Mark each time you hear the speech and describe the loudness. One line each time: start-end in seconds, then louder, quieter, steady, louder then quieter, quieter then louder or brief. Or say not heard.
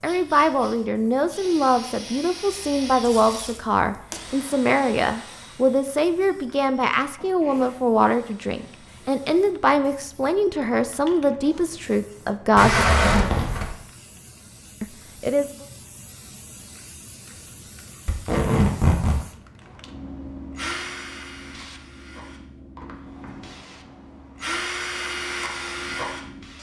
0.0-12.8 steady
14.8-15.7 brief.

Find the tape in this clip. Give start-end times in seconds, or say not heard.
3.0-4.2, 12.6-13.8, 18.1-19.2.